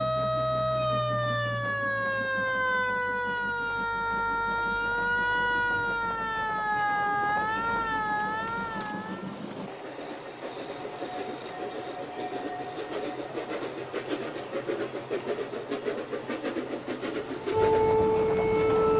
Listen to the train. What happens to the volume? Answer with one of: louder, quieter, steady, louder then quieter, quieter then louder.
louder.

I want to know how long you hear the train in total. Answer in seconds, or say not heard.
19 s.